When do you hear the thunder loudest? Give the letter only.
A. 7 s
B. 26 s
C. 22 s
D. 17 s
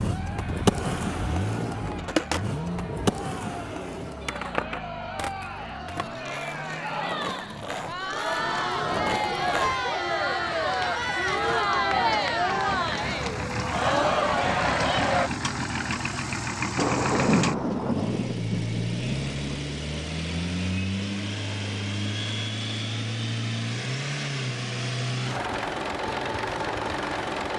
D.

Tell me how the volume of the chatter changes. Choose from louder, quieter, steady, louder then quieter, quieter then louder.
louder.